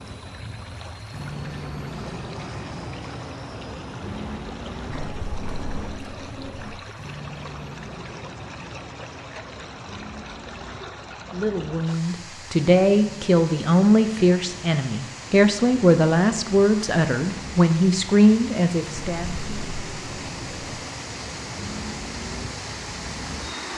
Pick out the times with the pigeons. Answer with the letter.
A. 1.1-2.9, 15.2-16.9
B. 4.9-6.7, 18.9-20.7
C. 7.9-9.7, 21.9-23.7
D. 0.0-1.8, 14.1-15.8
B.